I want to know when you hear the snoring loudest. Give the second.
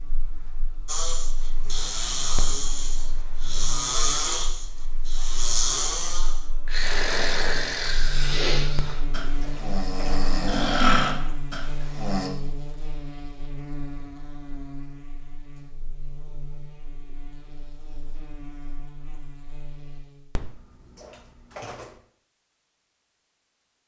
11 s.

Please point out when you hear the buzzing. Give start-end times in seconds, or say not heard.
0.0-20.3.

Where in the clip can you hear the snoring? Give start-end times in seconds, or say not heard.
0.8-12.3.